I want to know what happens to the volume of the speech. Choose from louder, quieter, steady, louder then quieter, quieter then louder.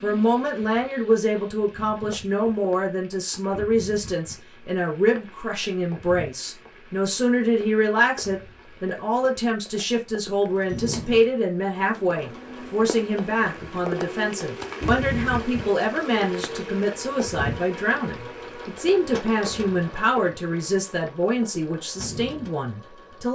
steady.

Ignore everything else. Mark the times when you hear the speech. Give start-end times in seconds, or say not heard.
0.0-23.3.